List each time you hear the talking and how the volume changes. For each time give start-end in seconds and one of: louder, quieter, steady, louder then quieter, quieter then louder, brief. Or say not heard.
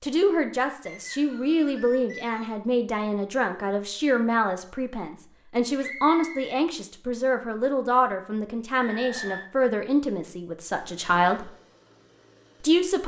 0.0-11.5 steady
12.6-13.0 brief.